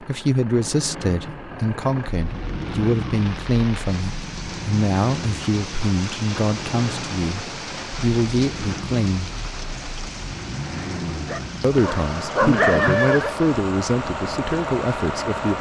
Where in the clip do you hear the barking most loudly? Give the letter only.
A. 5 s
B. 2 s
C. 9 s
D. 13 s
D.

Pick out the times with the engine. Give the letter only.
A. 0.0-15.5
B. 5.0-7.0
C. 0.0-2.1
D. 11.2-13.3
A.